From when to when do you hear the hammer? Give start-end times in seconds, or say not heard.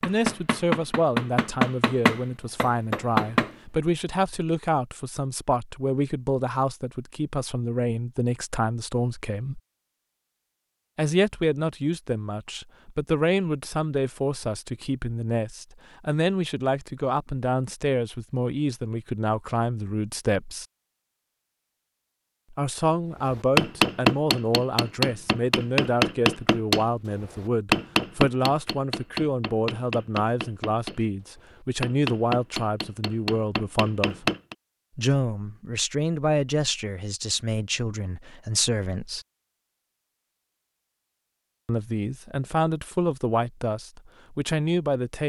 0.0-3.5, 23.3-34.5.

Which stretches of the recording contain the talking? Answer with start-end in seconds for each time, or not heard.
0.0-9.6, 10.9-20.6, 22.5-34.2, 35.0-39.2, 41.6-45.2.